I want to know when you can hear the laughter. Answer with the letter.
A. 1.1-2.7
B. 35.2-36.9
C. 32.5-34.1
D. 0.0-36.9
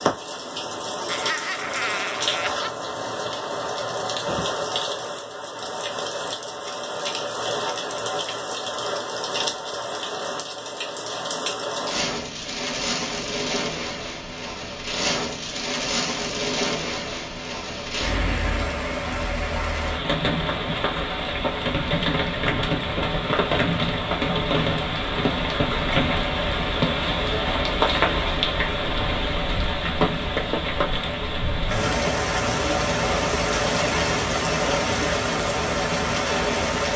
A.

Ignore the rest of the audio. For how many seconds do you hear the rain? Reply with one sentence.
The rain can be heard for 37 seconds in total.